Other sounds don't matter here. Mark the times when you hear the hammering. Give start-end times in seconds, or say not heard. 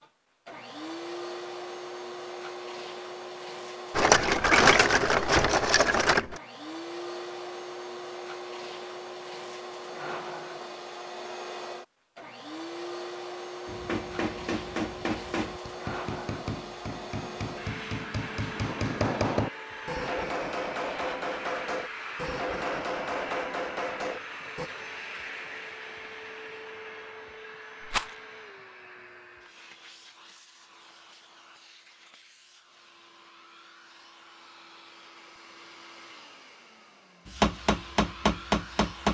13.7-24.7, 37.2-39.1.